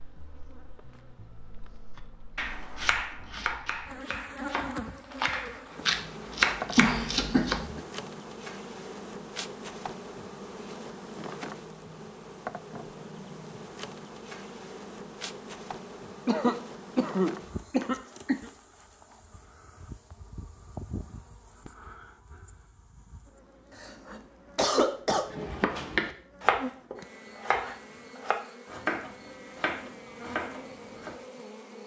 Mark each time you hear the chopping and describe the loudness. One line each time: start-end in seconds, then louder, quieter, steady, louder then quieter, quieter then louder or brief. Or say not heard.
2.4-7.6 quieter then louder
25.3-31.2 quieter.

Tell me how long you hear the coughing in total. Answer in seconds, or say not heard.
5 s.